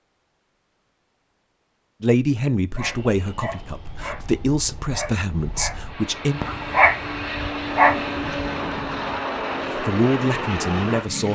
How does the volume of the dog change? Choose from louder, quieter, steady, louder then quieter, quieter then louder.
louder.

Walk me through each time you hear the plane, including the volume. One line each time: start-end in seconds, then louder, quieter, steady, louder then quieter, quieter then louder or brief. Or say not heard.
2.8-11.3 louder.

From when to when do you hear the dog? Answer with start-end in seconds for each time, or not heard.
2.8-8.6.